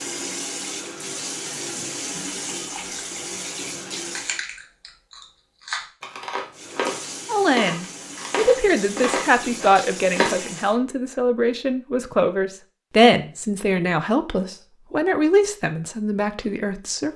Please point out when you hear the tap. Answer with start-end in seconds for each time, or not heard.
0.0-4.4, 6.5-10.8.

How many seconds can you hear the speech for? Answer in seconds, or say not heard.
10 s.